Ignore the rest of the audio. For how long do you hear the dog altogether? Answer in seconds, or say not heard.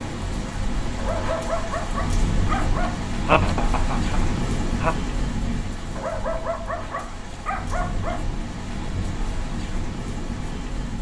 4 s.